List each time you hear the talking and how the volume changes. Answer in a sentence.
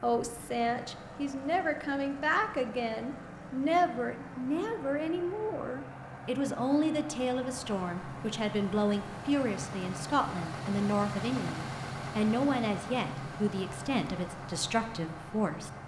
The talking can be heard from 0.0 to 15.7 s, at a steady volume.